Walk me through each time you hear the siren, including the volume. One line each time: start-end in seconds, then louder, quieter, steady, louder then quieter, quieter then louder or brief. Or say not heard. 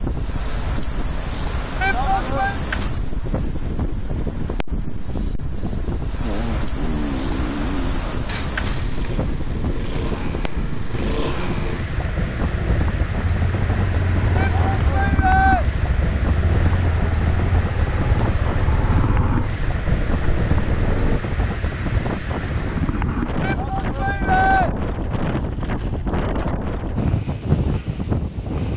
not heard.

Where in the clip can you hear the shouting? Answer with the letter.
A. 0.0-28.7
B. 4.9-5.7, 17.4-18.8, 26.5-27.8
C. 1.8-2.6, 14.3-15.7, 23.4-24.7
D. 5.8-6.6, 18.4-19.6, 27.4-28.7
C.